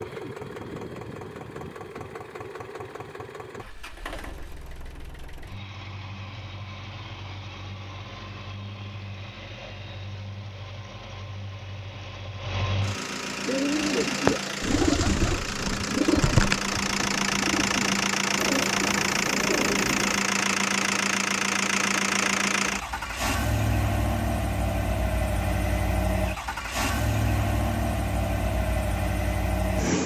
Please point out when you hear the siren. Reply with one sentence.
You can't hear the siren here.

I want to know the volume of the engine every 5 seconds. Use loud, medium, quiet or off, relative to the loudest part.
quiet, quiet, medium, loud, loud, loud.